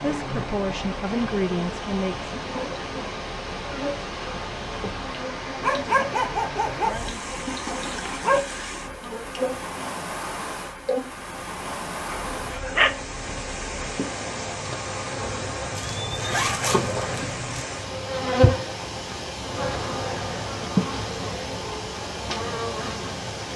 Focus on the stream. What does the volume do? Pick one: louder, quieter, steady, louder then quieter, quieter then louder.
steady.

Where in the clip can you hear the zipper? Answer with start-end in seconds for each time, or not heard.
15.8-17.6.